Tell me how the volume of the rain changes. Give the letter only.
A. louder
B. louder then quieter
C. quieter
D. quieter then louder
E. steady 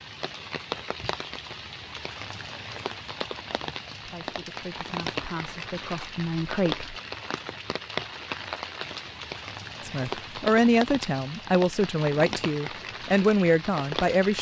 E.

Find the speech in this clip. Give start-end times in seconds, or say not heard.
4.0-7.0, 9.8-14.3.